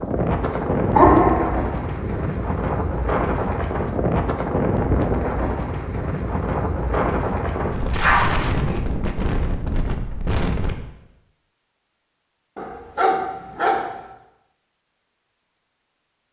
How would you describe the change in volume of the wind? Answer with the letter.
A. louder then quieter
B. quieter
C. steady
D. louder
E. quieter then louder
C.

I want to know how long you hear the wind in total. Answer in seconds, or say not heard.
11 s.